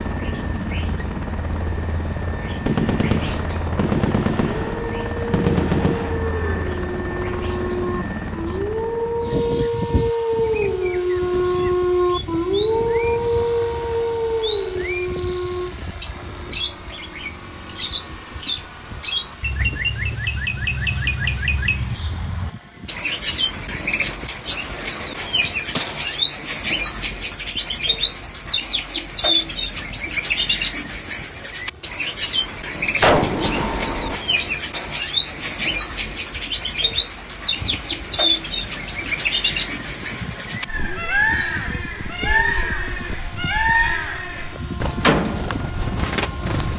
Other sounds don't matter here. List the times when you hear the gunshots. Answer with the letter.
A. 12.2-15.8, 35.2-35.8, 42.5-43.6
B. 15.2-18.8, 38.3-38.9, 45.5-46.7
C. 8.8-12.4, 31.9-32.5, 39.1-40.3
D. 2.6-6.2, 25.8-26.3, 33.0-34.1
D.